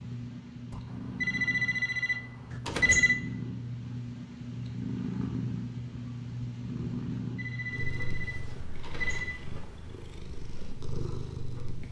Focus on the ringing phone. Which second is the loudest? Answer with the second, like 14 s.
3 s.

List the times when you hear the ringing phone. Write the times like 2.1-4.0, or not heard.
0.7-3.1, 6.9-9.4.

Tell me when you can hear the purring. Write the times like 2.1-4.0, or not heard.
0.0-11.8.